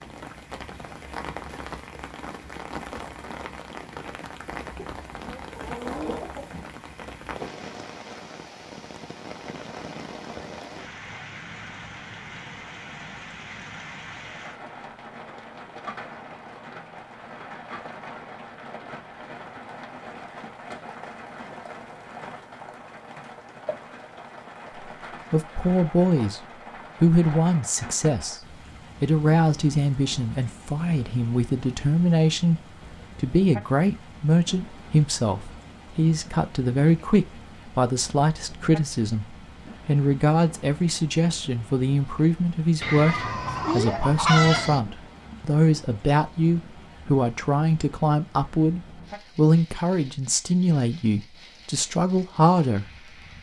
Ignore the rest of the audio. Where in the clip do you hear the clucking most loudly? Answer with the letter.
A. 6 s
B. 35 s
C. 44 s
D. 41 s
C.